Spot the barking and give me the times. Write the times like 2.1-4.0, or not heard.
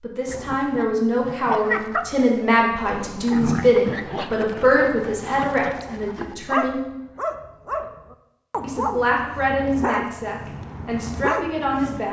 0.2-12.0.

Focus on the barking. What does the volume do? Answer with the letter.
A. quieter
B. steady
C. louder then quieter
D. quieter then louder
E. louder
B.